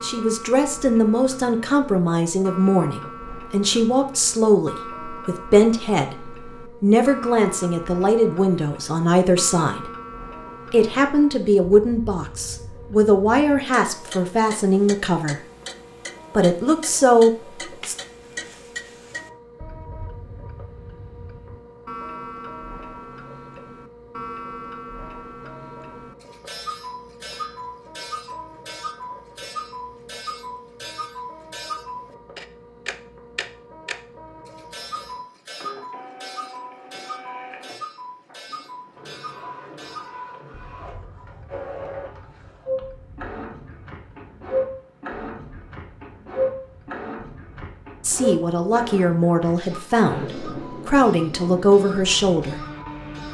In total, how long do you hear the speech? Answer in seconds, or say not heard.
21 s.